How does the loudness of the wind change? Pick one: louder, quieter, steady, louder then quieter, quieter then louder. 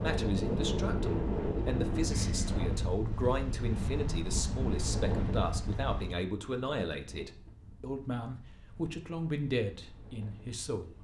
quieter.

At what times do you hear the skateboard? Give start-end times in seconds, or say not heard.
not heard.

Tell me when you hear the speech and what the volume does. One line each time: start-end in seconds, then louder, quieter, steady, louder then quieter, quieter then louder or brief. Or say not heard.
0.0-10.9 steady.